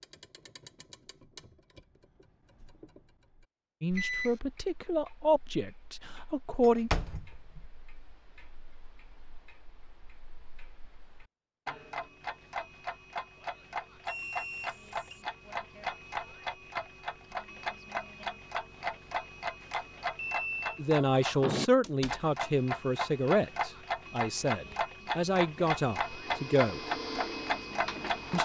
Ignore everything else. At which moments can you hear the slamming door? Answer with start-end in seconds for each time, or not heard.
6.6-7.7, 21.8-22.2.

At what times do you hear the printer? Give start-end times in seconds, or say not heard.
25.9-28.4.